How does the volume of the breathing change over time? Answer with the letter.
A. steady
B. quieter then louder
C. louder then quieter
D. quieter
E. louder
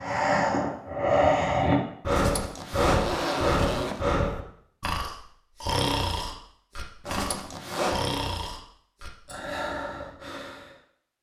D.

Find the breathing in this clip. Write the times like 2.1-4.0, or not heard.
0.0-10.8.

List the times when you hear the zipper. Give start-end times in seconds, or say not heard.
2.1-4.0, 7.0-8.1.